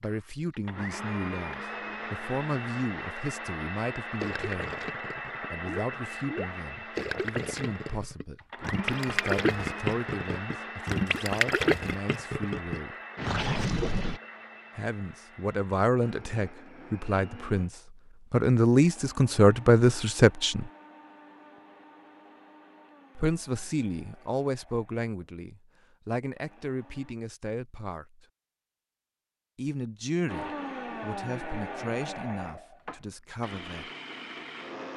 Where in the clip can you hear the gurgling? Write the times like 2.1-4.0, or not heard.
4.2-14.2.